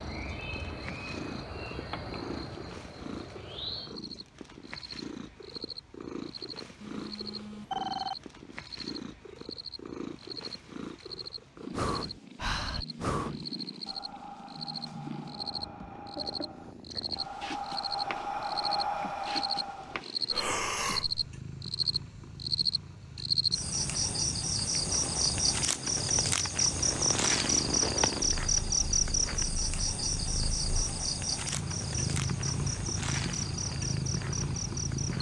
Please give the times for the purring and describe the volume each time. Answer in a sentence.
You can hear the purring from 0.0 to 35.1 s, getting louder.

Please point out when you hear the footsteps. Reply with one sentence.
You can't hear the footsteps here.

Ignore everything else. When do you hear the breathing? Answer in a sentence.
You can hear the breathing from 11.1 to 21.2 s.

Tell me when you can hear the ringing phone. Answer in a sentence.
The ringing phone can be heard from 6.8 to 8.2 s.